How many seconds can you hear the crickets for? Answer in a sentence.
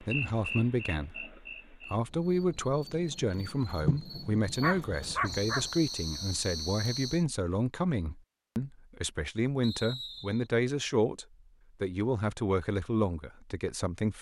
The crickets can be heard for 7 seconds in total.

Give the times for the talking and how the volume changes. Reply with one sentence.
The talking can be heard from 0.0 to 14.1 s, at a steady volume.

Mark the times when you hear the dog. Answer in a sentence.
You can hear the dog from 4.6 to 5.7 s.